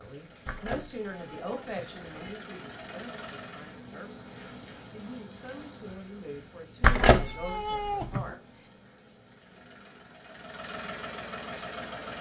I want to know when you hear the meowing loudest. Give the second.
7 s.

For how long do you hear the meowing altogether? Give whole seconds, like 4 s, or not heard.
3 s.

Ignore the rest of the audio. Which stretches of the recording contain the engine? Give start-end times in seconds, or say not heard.
0.0-3.8, 9.2-12.1.